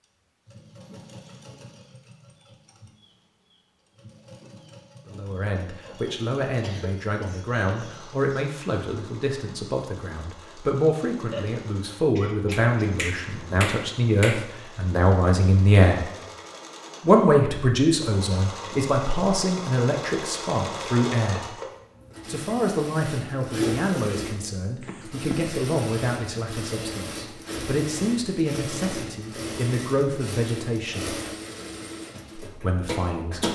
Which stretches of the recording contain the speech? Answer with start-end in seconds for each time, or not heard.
5.0-16.0, 17.0-21.6, 22.2-31.1, 32.4-33.4.